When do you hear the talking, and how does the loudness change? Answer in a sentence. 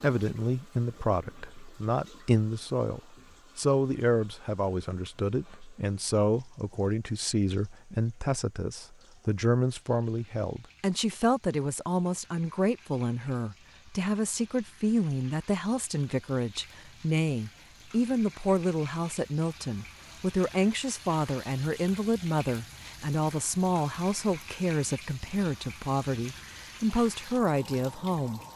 You can hear the talking from 0.0 to 28.4 s, at a steady volume.